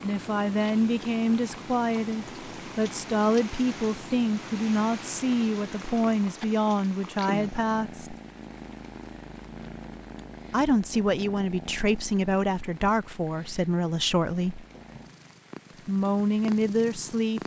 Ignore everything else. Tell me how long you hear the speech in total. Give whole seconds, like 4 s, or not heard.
14 s.